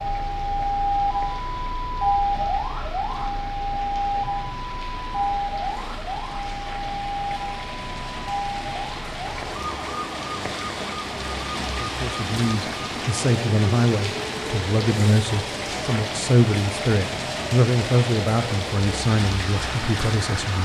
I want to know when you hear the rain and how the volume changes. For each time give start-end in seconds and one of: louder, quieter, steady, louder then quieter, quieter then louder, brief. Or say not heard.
0.0-20.6 louder.